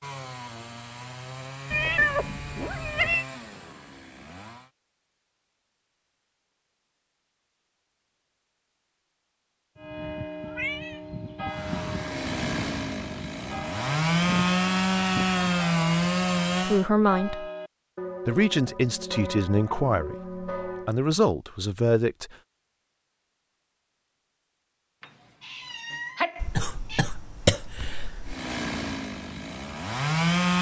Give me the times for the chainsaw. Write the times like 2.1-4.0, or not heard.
0.0-4.7, 11.5-16.9, 28.2-30.5.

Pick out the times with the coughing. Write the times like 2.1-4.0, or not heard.
26.4-28.4.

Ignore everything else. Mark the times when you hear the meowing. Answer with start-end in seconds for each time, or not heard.
1.7-3.2, 10.4-11.0, 25.0-27.0.